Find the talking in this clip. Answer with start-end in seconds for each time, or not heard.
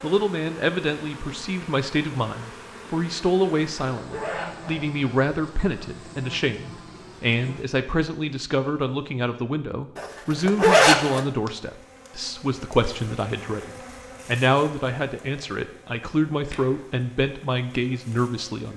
0.0-18.7.